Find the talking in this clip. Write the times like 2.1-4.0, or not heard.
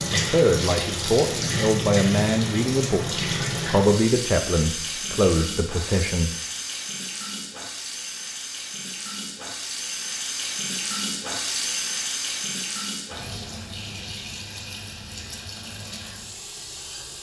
0.1-6.3.